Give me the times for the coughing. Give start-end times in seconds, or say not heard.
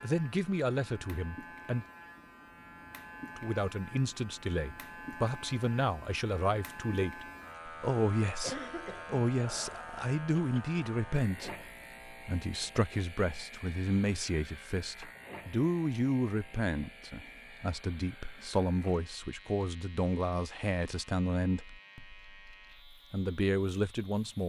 8.4-9.8.